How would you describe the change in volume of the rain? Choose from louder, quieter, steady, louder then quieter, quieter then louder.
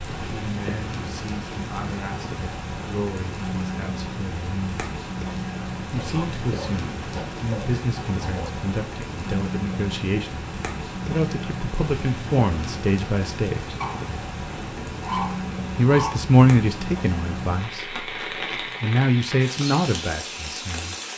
steady.